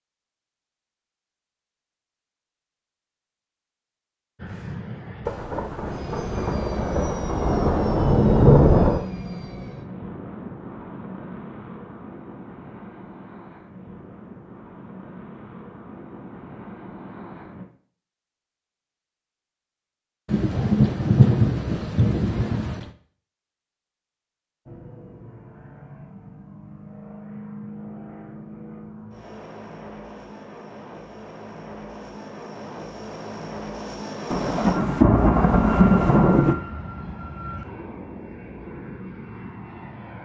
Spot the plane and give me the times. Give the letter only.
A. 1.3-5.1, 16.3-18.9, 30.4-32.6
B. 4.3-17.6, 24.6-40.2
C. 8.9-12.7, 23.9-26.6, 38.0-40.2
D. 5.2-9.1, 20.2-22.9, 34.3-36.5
B.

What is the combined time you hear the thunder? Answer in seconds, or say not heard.
9 s.